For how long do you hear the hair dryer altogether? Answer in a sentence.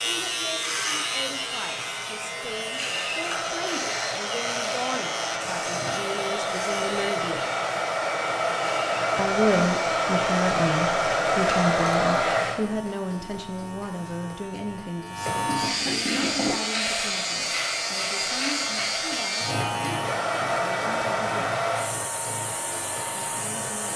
The hair dryer can be heard for 20 seconds in total.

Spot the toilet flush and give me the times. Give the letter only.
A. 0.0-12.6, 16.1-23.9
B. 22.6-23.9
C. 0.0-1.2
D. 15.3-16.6
D.